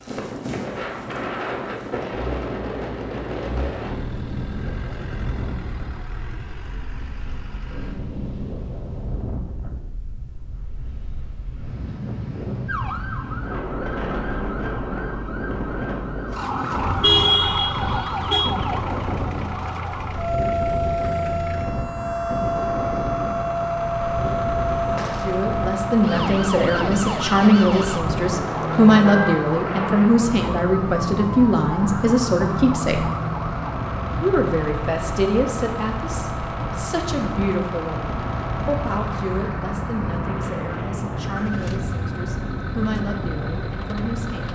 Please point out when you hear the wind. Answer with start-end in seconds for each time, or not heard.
0.0-44.4.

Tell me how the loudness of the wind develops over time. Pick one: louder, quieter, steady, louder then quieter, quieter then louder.
steady.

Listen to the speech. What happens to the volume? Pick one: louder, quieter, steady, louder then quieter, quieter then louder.
quieter.